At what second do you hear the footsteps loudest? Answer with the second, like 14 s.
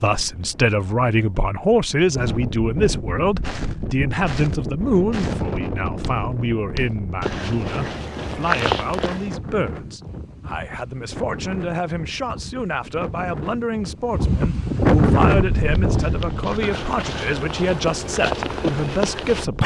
9 s.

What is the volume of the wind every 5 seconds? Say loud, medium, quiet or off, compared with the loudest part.
medium, medium, loud, loud.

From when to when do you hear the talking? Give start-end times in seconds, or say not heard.
0.0-19.6.